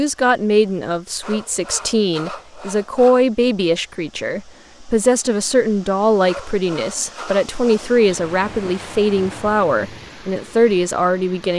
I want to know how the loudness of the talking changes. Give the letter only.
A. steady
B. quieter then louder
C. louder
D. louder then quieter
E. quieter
A.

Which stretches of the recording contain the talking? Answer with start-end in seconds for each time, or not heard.
0.0-11.5.